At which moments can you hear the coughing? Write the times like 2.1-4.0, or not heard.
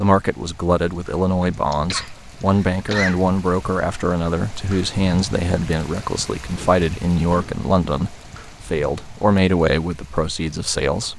1.4-3.2, 6.5-7.7.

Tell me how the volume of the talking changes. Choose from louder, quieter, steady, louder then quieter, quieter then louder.
steady.